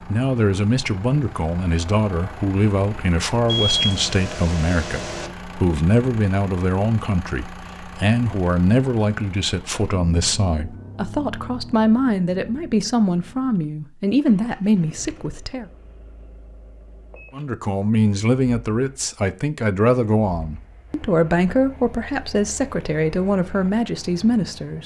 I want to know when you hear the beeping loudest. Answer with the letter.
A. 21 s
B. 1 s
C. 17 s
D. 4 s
D.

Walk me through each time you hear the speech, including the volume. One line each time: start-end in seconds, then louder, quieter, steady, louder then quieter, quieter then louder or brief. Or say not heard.
0.1-15.7 steady
17.4-24.8 steady.